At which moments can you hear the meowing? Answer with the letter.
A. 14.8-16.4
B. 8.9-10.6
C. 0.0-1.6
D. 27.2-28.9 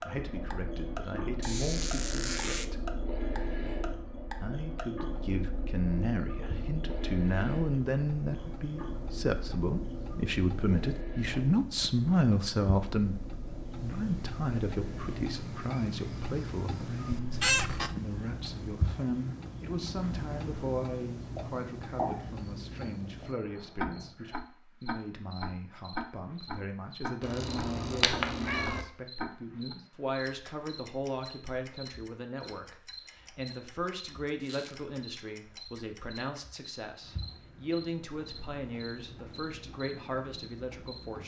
D.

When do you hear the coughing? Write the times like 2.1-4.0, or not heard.
not heard.